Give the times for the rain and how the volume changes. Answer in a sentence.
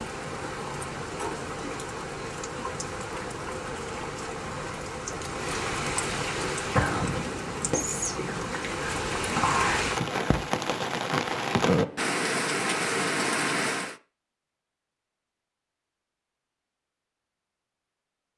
The rain can be heard from 0.0 to 13.9 s, getting louder.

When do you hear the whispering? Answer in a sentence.
You can hear the whispering from 6.5 to 9.8 s.